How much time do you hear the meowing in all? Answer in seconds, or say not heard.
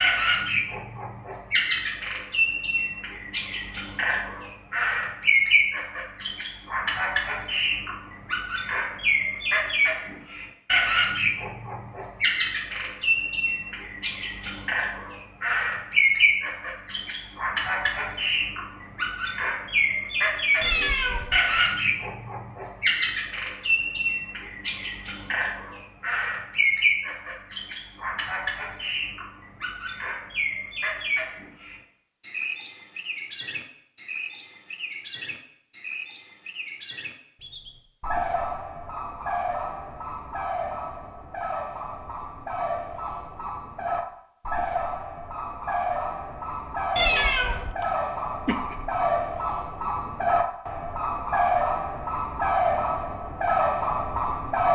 3 s.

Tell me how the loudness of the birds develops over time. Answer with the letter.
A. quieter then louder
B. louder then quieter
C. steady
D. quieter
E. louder
A.